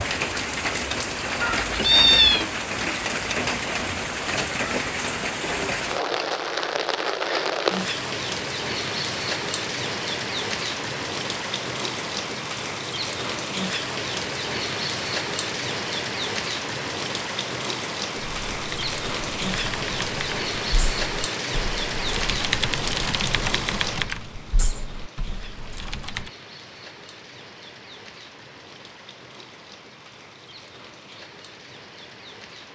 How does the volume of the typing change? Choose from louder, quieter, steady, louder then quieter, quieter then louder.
louder then quieter.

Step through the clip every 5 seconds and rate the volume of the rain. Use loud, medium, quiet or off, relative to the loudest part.
loud, loud, loud, loud, loud, quiet, quiet.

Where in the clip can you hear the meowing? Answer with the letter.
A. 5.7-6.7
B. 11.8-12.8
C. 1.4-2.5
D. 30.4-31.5
C.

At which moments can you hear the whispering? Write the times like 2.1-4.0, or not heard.
not heard.